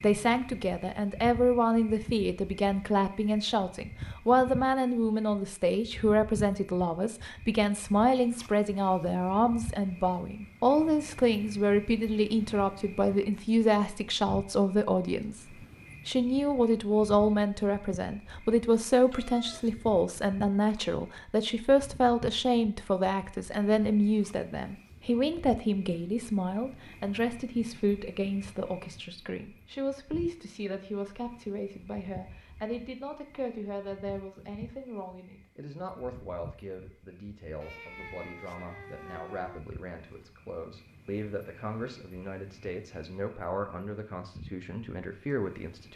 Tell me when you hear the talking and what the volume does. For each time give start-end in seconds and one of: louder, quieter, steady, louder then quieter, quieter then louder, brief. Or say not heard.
0.0-45.9 quieter.